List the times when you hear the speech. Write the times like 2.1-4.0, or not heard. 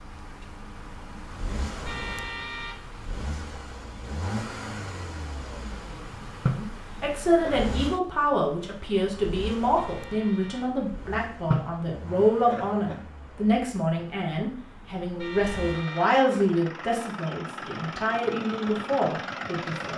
6.5-19.9.